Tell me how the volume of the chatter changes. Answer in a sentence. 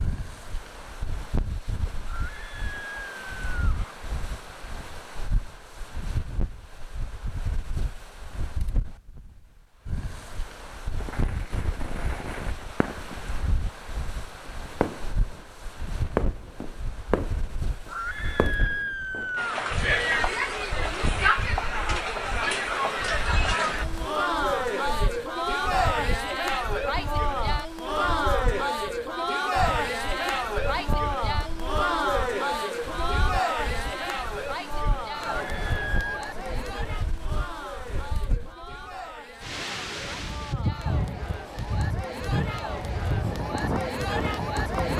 The loudness of the chatter goes down.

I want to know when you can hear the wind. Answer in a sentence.
You can hear the wind from 0.0 to 44.9 s.